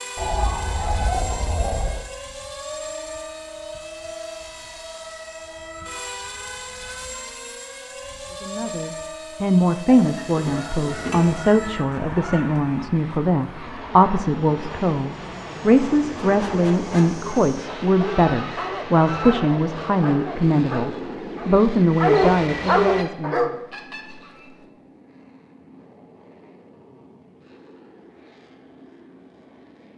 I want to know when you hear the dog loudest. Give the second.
22 s.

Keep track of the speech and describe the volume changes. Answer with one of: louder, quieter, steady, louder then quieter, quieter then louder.
steady.